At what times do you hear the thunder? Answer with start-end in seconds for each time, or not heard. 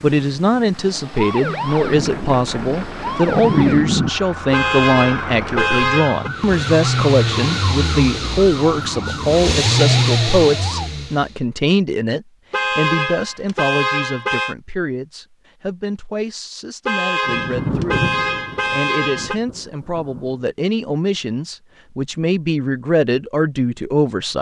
1.9-4.1, 17.2-20.4.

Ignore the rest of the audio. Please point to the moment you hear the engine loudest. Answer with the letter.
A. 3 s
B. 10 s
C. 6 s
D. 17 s
B.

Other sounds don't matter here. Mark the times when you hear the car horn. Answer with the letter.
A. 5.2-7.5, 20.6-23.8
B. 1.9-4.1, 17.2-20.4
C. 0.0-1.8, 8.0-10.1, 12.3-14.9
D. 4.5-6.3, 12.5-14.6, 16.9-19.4
D.